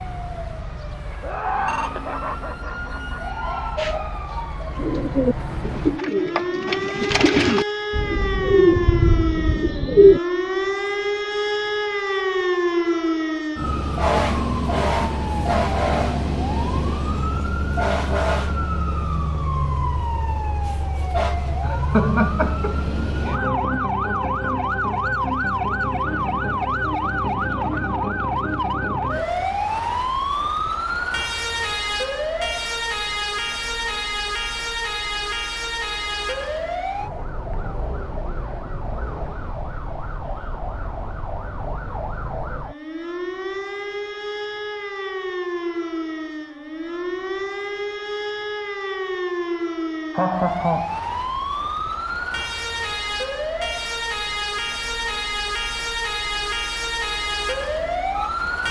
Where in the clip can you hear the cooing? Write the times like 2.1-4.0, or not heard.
3.8-10.2.